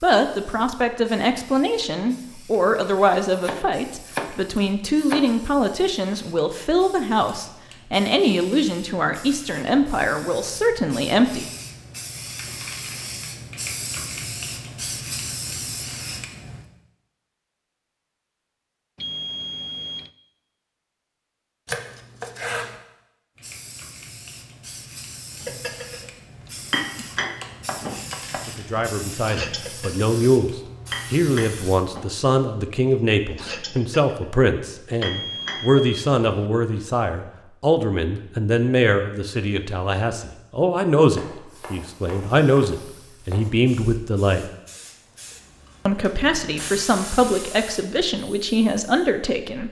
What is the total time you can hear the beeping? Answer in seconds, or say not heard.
3 s.